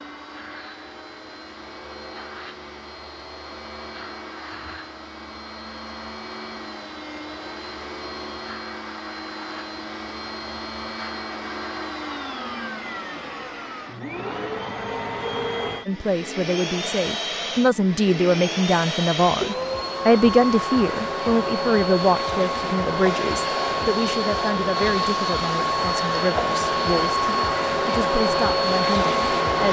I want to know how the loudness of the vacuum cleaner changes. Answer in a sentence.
The loudness of the vacuum cleaner goes up.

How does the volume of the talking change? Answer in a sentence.
The loudness of the talking goes down.